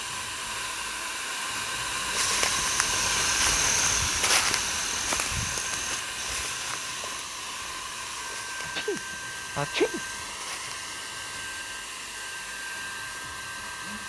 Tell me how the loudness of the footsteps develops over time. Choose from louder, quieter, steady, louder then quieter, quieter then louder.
quieter.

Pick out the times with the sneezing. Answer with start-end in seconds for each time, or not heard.
8.6-10.0.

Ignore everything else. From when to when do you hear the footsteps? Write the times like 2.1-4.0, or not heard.
2.1-10.8.